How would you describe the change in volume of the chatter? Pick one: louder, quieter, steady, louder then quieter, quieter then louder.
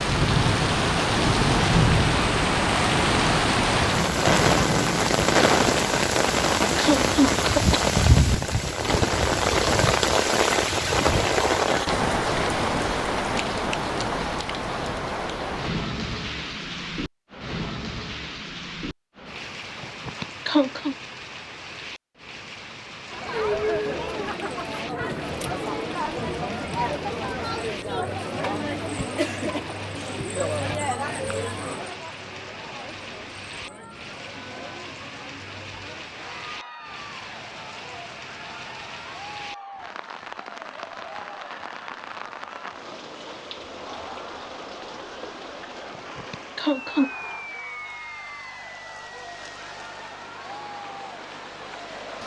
quieter.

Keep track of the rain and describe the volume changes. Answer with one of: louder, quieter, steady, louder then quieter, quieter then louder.
quieter.